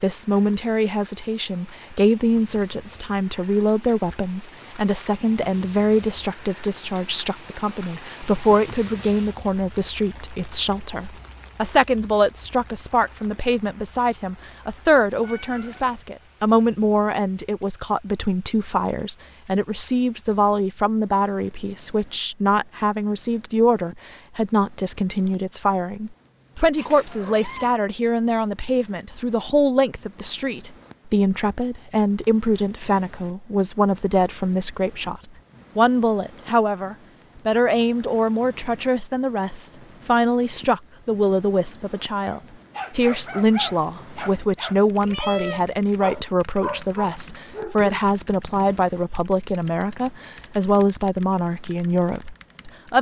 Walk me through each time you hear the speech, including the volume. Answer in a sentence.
You can hear the speech from 0.0 to 52.9 s, at a steady volume.